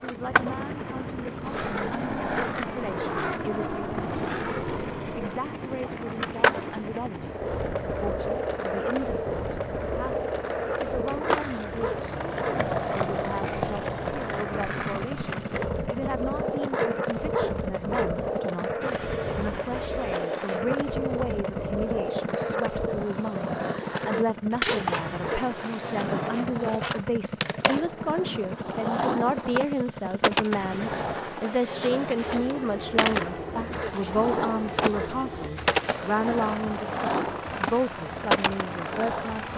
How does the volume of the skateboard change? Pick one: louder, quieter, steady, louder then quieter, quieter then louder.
steady.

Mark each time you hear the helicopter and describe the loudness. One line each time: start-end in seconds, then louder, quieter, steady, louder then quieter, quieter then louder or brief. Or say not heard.
0.0-39.5 steady.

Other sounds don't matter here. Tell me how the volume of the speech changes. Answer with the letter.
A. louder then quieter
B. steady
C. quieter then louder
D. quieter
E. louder
E.